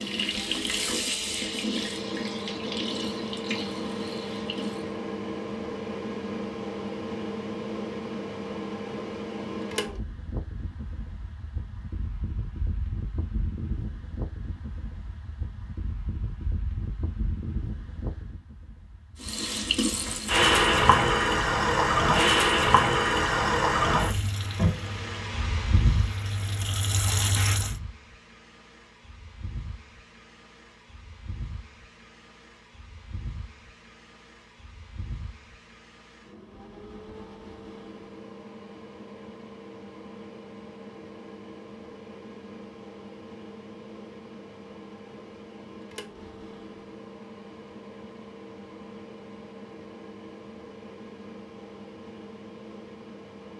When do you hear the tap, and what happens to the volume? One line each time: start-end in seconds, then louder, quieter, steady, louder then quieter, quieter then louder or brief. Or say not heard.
0.0-5.0 quieter
19.2-27.8 quieter.